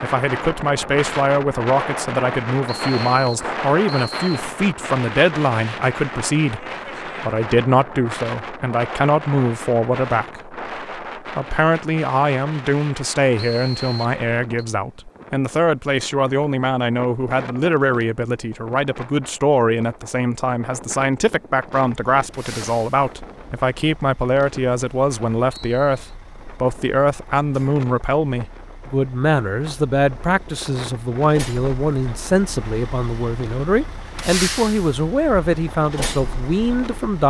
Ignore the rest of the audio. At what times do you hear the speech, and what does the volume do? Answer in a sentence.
You can hear the speech from 0.0 to 37.2 s, at a steady volume.